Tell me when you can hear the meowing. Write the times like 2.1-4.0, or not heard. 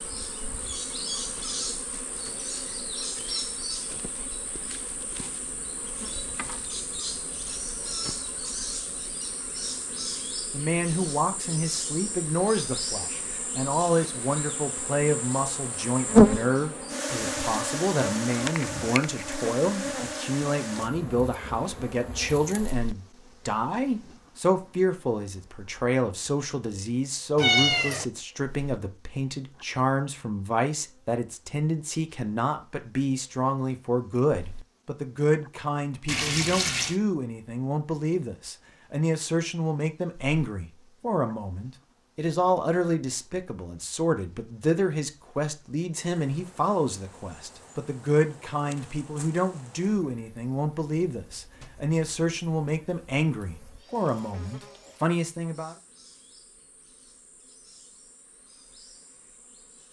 27.4-28.1.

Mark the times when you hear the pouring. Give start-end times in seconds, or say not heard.
36.0-37.0.